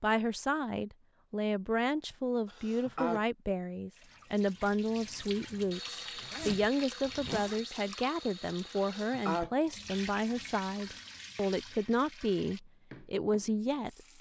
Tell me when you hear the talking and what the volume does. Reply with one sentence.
You can hear the talking from 0.0 to 14.1 s, at a steady volume.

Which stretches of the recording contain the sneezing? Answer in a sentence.
The sneezing can be heard from 2.5 to 3.2 s and from 8.8 to 9.5 s.